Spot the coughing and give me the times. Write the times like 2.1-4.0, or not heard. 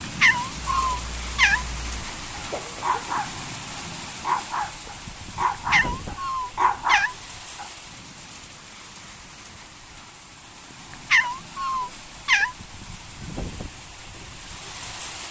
2.5-3.1.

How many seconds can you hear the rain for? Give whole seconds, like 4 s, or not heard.
15 s.